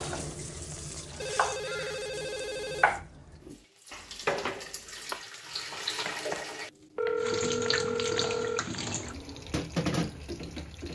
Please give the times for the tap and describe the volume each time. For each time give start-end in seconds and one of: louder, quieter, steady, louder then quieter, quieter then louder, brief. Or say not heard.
0.0-10.9 louder.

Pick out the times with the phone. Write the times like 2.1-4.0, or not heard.
1.2-2.9, 7.0-8.6.